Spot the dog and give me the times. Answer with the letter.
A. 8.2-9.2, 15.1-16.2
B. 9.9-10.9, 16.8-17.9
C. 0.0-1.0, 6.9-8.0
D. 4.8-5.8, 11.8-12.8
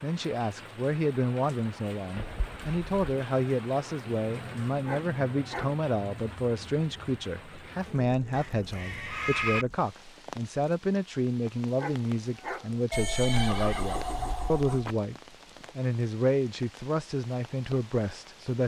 D.